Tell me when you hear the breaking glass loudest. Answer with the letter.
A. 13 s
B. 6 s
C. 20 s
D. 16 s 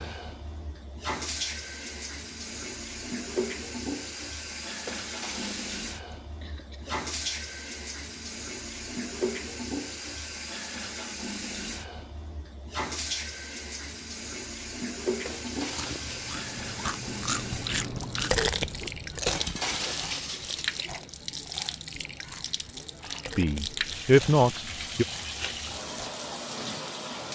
C.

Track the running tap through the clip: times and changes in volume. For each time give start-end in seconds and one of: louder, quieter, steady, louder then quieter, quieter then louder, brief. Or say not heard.
0.0-27.3 steady.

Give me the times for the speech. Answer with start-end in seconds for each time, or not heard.
23.4-25.1.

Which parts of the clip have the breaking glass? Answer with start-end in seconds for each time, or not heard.
4.8-5.8, 15.2-16.4, 19.2-20.9.